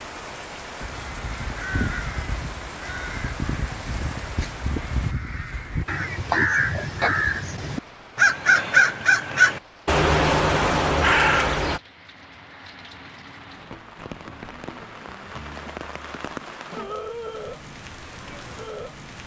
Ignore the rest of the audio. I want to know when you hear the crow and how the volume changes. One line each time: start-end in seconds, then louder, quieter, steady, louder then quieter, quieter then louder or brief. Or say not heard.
0.8-11.8 louder.